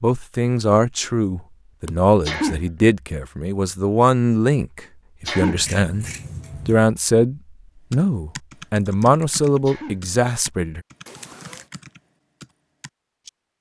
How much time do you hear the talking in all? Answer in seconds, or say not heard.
10 s.